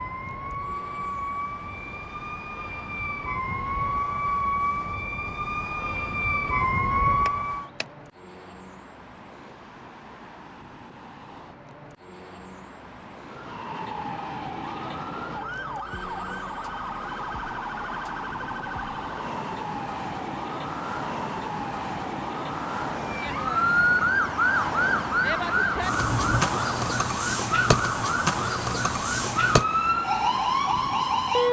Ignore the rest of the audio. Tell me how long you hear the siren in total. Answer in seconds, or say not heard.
26 s.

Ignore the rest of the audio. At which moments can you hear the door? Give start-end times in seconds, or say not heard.
7.2-7.8, 25.9-26.5.